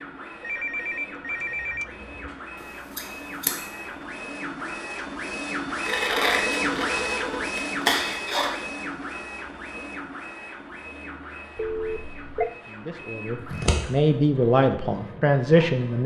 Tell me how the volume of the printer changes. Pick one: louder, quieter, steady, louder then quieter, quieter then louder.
louder then quieter.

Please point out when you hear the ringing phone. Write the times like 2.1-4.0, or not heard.
0.4-2.3, 5.8-7.6, 11.6-12.5.